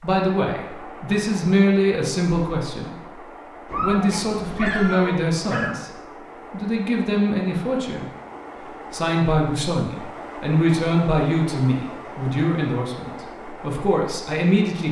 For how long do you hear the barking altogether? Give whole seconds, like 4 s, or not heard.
2 s.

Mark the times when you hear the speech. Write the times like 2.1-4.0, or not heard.
0.0-3.2, 3.8-5.9, 6.5-8.1, 8.9-14.8.